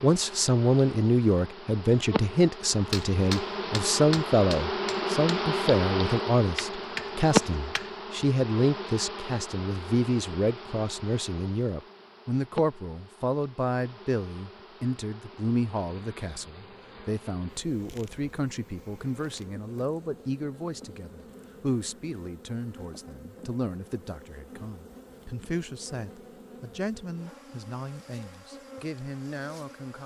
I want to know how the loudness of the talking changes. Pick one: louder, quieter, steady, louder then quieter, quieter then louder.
quieter.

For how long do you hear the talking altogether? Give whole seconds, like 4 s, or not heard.
30 s.